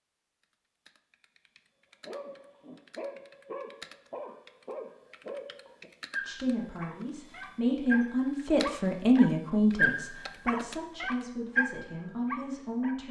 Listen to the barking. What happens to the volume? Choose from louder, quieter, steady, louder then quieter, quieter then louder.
louder.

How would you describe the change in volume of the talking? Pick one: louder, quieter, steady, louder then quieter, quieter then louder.
louder then quieter.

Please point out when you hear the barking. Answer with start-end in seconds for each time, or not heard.
2.0-12.9.